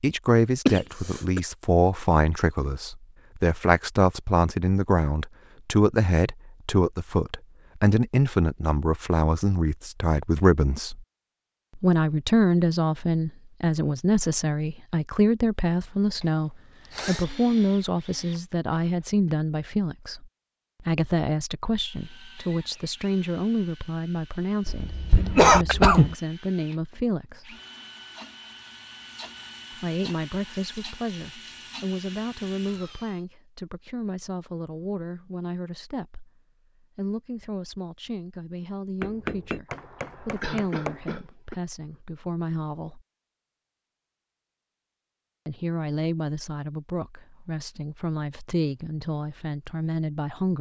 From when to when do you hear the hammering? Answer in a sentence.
The hammering can be heard from 39.0 to 41.1 s.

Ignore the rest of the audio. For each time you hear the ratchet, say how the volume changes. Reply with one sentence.
You can't hear the ratchet here.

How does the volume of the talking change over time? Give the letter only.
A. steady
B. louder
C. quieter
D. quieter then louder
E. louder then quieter
C.